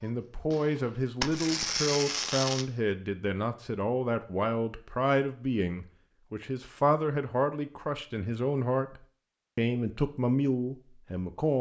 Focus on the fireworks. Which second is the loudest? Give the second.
2 s.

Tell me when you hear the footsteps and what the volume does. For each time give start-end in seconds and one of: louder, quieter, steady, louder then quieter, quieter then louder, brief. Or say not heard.
not heard.